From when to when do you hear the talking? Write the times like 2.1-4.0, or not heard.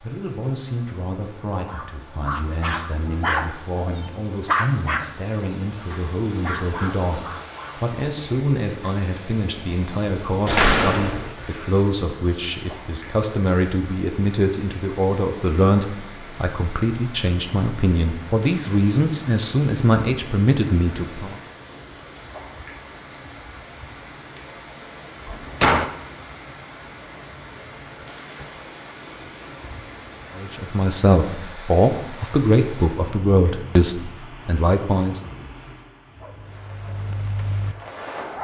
0.0-21.4, 30.4-35.2.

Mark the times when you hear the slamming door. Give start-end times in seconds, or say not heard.
10.4-11.3, 25.2-25.9.